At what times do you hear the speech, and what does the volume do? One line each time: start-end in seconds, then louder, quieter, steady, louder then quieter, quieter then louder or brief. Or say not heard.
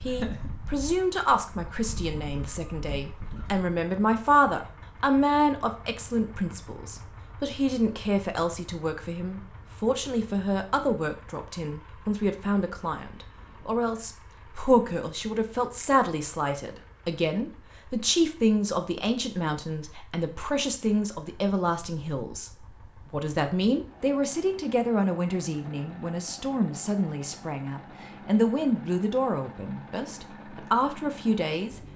0.0-31.8 steady.